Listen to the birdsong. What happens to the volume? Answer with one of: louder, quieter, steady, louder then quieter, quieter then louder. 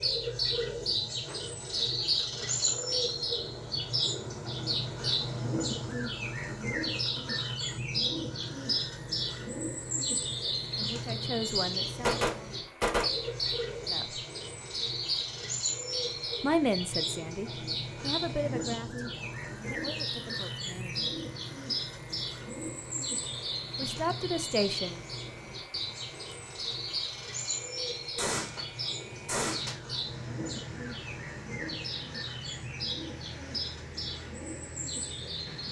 quieter.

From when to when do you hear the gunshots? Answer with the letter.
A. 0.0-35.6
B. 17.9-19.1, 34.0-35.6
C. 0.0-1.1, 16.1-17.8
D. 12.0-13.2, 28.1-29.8
D.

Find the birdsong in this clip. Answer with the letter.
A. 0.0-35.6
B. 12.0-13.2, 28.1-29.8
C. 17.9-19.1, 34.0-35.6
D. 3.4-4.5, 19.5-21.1
A.